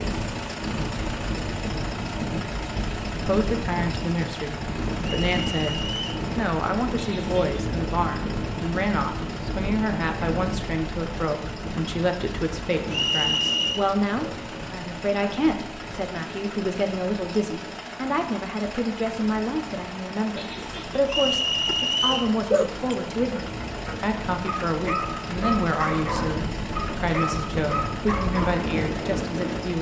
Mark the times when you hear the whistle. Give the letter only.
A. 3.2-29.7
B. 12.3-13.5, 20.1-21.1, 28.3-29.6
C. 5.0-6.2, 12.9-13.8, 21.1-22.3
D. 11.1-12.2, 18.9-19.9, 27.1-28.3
C.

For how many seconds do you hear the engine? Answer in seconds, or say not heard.
30 s.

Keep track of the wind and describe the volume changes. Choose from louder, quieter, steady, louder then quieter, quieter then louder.
quieter then louder.